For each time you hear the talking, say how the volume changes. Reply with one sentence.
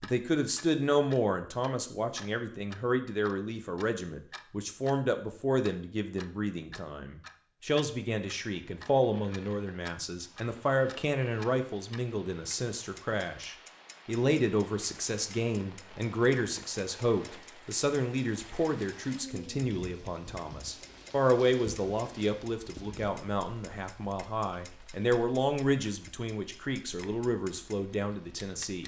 The talking can be heard from 0.0 to 28.8 s, at a steady volume.